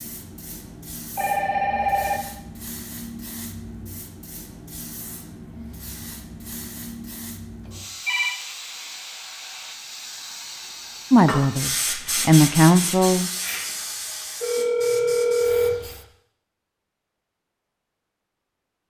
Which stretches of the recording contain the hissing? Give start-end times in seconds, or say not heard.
0.0-16.1.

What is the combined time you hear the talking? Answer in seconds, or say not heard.
2 s.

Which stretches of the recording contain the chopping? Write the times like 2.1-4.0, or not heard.
not heard.